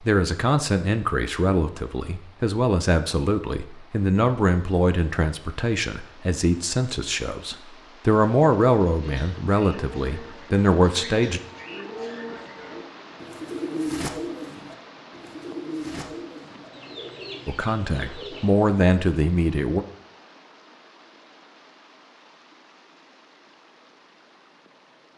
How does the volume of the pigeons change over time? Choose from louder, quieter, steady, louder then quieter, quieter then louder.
louder then quieter.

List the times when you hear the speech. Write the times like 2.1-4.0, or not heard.
0.0-11.4, 17.4-19.9.